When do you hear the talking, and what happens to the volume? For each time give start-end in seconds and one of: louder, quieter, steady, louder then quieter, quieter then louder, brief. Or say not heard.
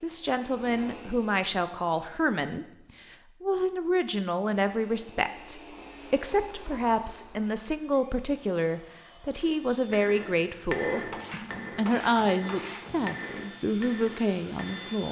0.0-15.0 steady.